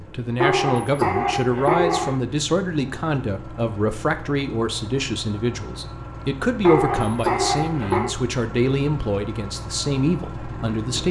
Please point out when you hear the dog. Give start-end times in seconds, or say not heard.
0.3-2.1, 6.6-8.2.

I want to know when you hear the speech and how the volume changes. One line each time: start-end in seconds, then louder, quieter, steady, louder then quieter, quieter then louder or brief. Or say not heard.
0.0-11.0 steady.